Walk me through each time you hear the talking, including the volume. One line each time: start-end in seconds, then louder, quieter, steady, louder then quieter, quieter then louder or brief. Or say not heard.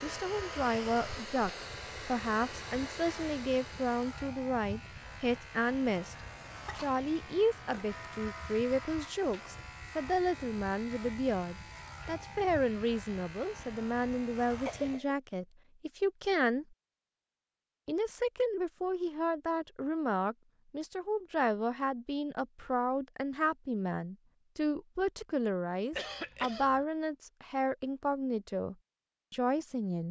0.0-6.2 steady
6.8-16.6 steady
17.9-30.0 steady.